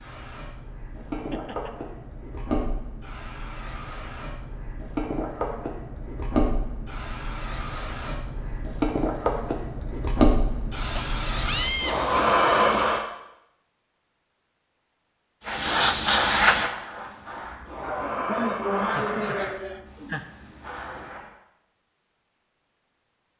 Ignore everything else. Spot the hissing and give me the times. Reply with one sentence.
The hissing can be heard from 0.0 to 13.1 s and from 15.4 to 21.4 s.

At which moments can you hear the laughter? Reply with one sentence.
The laughter can be heard from 1.1 to 1.7 s, from 10.9 to 12.2 s and from 17.8 to 20.2 s.